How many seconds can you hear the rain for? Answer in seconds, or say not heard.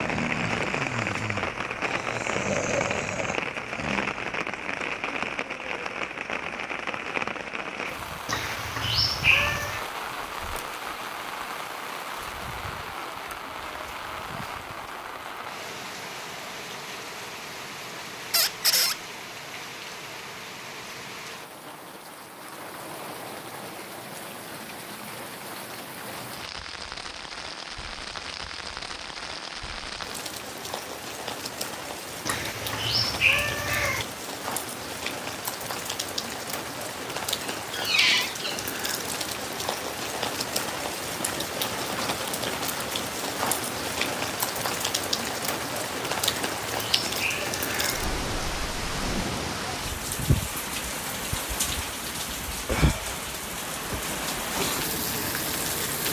56 s.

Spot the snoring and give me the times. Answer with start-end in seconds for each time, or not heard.
0.0-4.3.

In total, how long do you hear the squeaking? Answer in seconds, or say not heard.
2 s.